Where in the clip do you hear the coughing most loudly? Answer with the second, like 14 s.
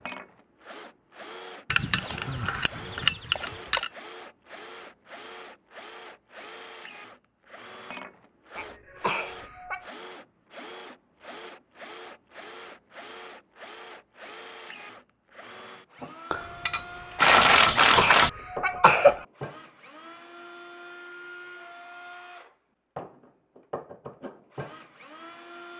19 s.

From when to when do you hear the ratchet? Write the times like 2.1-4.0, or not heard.
1.7-3.9, 16.3-18.3.